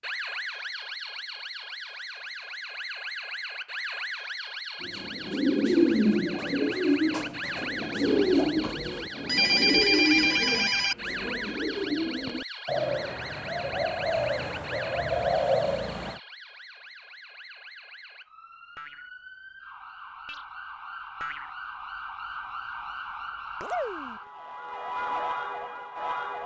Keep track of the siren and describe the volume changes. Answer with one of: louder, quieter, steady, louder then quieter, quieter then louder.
quieter then louder.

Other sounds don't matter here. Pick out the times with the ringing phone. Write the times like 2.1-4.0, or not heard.
9.2-10.9.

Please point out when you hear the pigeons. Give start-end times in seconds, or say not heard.
4.8-16.2.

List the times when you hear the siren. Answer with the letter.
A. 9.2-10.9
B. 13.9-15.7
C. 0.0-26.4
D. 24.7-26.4
C.